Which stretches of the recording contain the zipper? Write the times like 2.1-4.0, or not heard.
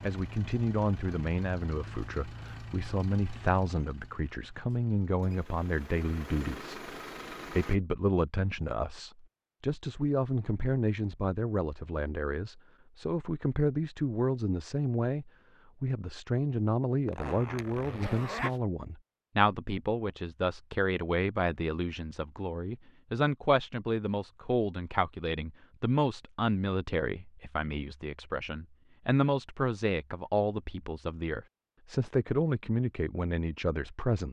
17.1-18.6.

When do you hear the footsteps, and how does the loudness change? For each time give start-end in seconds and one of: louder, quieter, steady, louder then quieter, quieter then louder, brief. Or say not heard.
not heard.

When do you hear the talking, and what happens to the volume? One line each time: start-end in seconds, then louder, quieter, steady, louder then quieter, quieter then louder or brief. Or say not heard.
0.0-34.2 steady.